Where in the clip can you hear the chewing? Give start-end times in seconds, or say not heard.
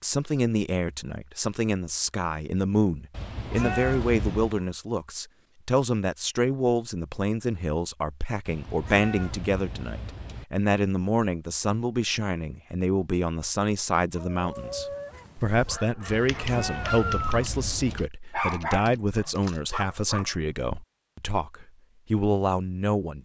not heard.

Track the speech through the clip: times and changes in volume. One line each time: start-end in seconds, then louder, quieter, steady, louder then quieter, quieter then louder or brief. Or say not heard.
0.0-23.2 steady.